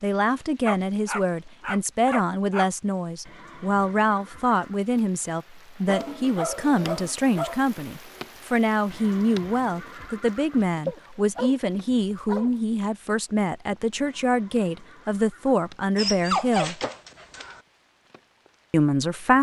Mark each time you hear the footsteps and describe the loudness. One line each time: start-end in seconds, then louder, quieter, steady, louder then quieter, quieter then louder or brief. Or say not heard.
not heard.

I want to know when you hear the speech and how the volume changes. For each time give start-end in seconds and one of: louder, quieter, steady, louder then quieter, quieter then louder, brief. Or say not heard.
0.0-16.8 steady
18.7-19.3 brief.